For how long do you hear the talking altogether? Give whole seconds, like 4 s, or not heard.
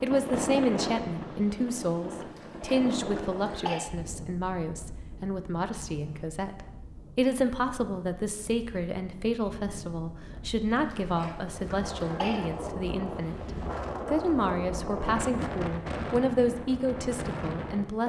18 s.